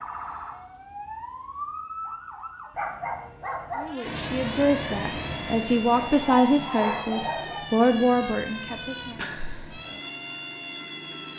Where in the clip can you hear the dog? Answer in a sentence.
The dog can be heard from 2.8 to 3.9 s and from 6.0 to 7.7 s.